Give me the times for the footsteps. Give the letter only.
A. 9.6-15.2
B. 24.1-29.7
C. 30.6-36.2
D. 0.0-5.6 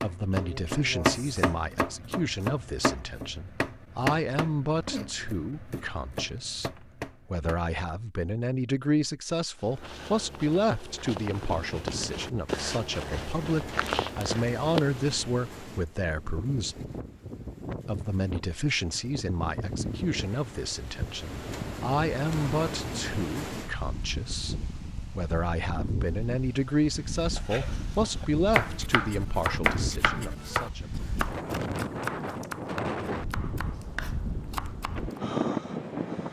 A.